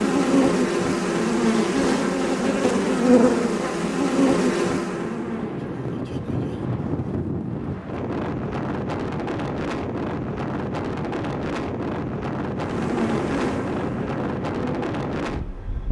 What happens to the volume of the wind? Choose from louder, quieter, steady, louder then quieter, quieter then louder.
steady.